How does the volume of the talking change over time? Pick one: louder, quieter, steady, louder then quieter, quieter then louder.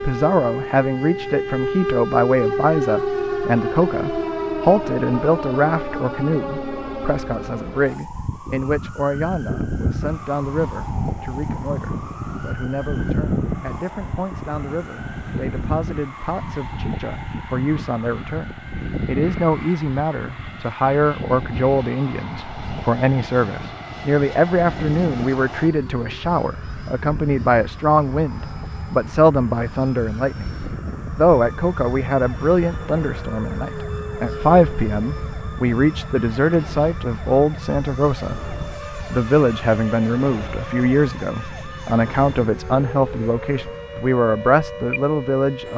quieter then louder.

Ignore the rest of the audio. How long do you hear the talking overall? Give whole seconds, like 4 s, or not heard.
46 s.